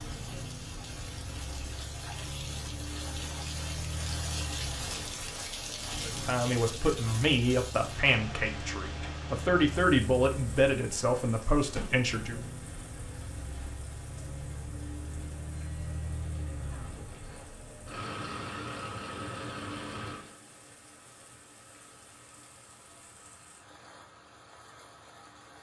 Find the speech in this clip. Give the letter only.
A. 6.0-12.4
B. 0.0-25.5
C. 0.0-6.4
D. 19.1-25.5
A.